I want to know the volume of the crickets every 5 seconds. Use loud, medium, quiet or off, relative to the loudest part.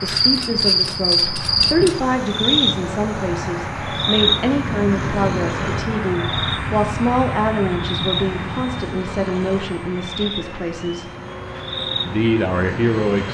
loud, medium, medium.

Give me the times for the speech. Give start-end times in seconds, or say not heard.
0.0-11.1, 12.1-13.2.